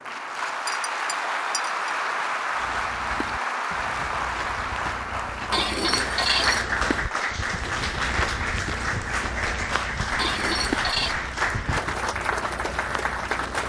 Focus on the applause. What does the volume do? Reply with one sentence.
The loudness of the applause stays about the same.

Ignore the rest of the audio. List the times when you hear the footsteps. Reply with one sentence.
The footsteps can be heard from 2.5 to 13.6 s.